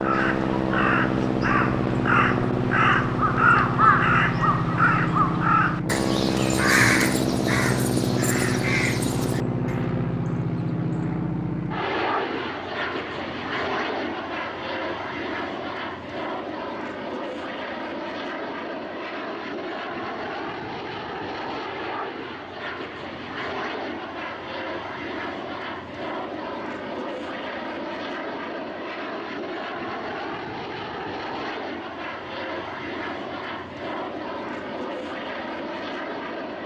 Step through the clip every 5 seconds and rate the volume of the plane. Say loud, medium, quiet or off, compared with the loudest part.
loud, loud, loud, medium, medium, medium, medium, medium.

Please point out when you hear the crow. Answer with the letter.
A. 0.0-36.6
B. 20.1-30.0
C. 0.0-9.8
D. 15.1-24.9
C.